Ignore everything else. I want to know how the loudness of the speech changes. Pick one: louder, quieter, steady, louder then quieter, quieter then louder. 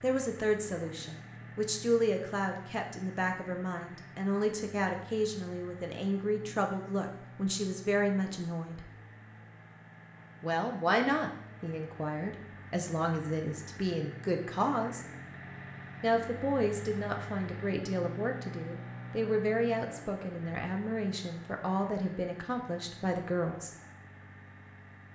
steady.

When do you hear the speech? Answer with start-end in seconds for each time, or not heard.
0.0-8.8, 10.4-15.1, 16.0-23.7.